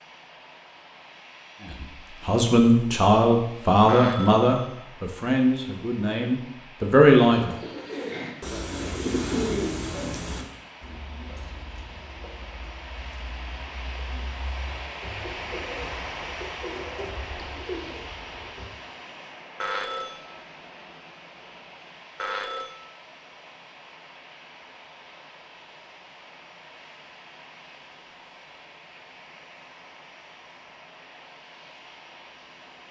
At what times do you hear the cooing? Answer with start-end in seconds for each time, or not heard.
7.3-18.7.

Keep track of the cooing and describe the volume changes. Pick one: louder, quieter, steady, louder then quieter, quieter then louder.
quieter then louder.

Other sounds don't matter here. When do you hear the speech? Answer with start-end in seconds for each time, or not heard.
1.7-7.5.